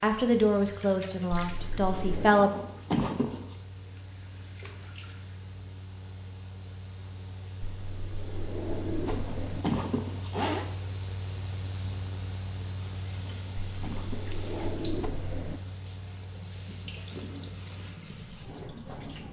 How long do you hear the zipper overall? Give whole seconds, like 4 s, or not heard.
4 s.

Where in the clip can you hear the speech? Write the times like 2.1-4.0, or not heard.
0.0-2.5.